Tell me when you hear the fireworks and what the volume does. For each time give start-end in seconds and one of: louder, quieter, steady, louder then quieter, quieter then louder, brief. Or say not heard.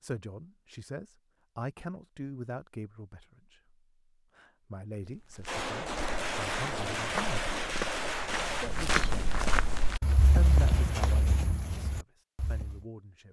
5.5-11.2 quieter.